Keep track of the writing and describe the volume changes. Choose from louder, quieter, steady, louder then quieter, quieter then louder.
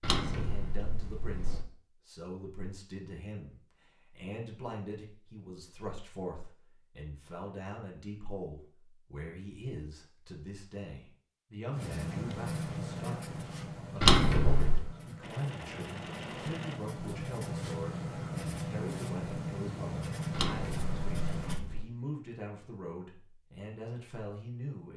quieter then louder.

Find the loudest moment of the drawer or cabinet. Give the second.
14 s.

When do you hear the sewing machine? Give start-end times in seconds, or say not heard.
15.2-16.8.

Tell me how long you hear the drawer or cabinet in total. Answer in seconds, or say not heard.
4 s.